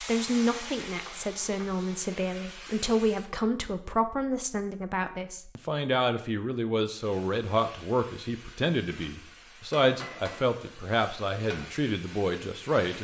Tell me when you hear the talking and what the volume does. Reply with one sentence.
You can hear the talking from 0.0 to 12.9 s, at a steady volume.